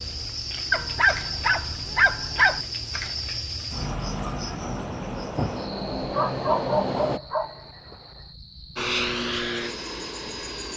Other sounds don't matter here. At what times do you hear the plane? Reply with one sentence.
You can hear the plane from 4.7 to 7.2 s and from 8.8 to 10.7 s.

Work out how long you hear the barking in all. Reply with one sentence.
The barking can be heard for 4 seconds in total.